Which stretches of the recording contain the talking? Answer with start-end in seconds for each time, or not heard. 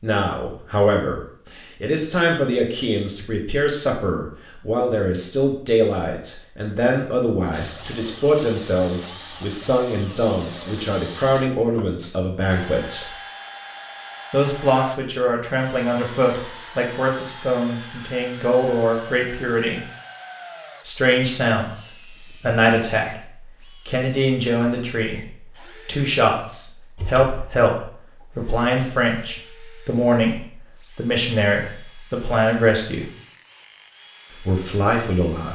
0.0-13.1, 14.3-19.9, 20.9-33.0, 34.4-35.5.